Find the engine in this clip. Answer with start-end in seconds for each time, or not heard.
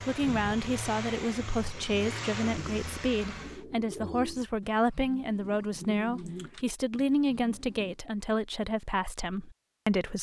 0.0-3.6.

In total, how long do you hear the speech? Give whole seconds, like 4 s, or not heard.
10 s.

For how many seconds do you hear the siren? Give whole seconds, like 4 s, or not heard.
not heard.